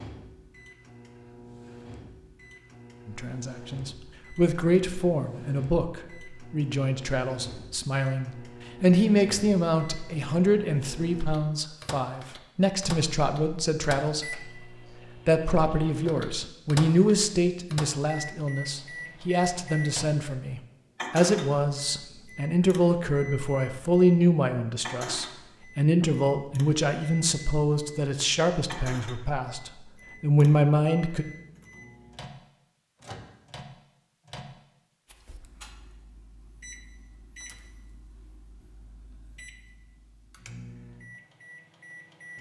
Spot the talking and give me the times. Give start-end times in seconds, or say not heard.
3.0-14.5, 15.2-31.2.